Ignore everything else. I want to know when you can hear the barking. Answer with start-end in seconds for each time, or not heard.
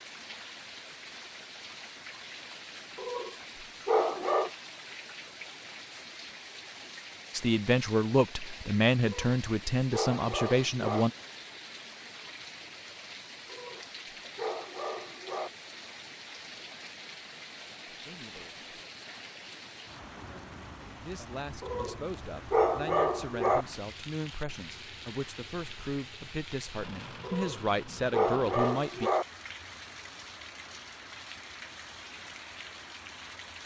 3.0-4.5, 9.0-11.1, 13.4-15.5, 21.6-23.6, 27.2-29.2.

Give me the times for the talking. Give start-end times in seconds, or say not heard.
7.3-11.1, 17.9-18.7, 21.0-29.1.